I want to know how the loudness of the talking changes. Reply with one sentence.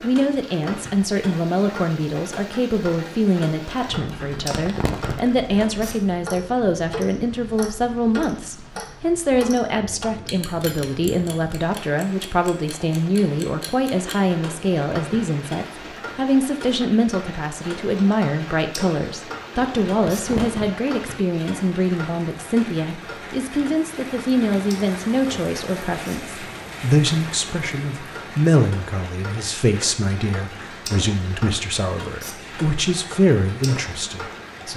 The volume of the talking stays about the same.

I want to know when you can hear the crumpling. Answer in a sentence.
The crumpling can be heard from 4.2 to 5.3 s and from 19.6 to 20.7 s.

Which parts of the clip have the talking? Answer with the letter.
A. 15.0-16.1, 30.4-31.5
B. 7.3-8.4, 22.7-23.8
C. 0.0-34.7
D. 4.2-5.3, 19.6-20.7
C.